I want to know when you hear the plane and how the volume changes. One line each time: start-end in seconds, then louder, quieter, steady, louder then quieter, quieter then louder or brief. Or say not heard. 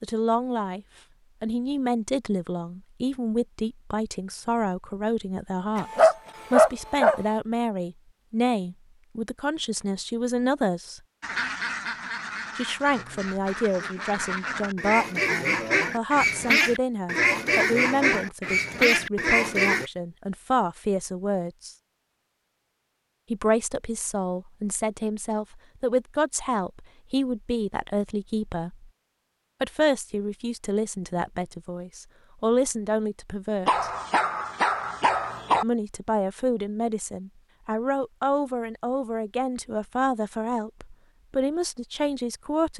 not heard.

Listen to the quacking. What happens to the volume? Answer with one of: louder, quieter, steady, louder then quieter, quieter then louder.
louder.